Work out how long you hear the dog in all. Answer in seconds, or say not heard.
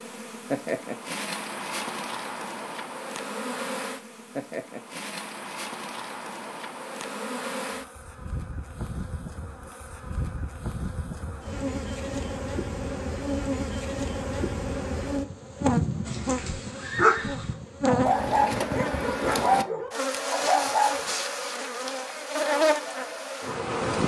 5 s.